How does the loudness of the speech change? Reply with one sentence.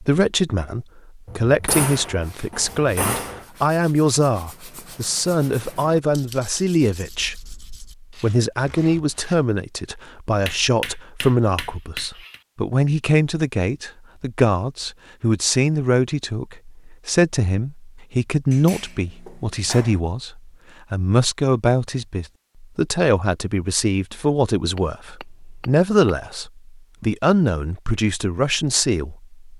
The volume of the speech stays about the same.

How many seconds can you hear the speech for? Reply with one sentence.
The speech can be heard for 29 seconds in total.